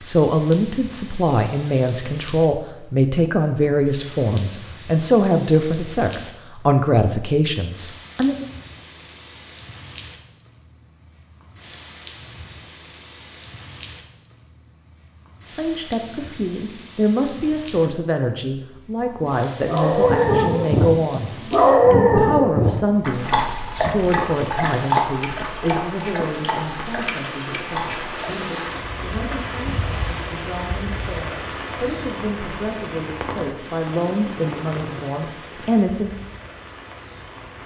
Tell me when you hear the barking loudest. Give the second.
22 s.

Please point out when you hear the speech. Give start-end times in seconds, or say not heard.
0.0-8.4, 15.6-21.3, 21.9-36.1.